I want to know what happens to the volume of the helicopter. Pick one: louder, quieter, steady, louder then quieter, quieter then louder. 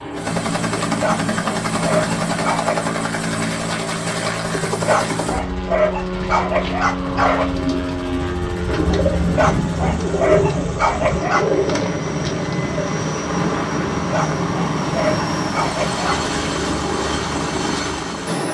steady.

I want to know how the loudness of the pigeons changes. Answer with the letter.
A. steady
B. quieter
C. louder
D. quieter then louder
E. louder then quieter
C.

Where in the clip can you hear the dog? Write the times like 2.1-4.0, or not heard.
1.0-2.8, 4.8-7.5, 9.3-11.6, 14.1-16.3.